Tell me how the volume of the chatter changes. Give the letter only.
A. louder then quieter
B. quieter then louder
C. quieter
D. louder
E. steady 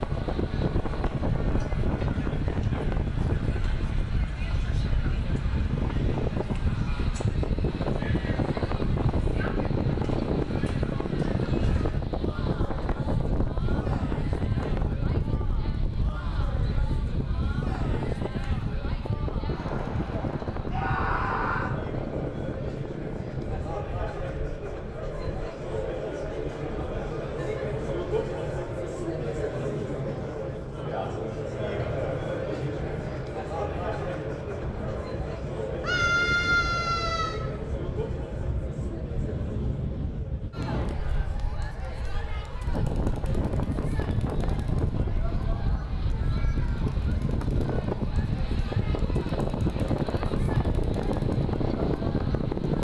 A.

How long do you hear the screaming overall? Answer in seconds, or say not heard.
3 s.